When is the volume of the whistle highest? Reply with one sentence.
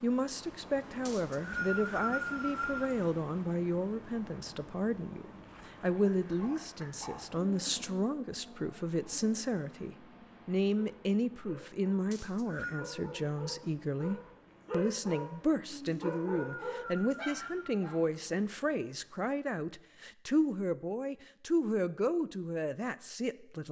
The volume of the whistle peaks at 2 seconds.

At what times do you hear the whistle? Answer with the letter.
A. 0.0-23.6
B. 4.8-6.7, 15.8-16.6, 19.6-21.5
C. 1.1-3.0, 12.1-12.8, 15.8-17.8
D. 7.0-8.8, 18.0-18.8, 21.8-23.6
C.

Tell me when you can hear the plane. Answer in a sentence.
The plane can't be heard in this clip.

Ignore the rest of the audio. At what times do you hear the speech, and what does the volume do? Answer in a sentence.
The speech can be heard from 0.0 to 23.6 s, at a steady volume.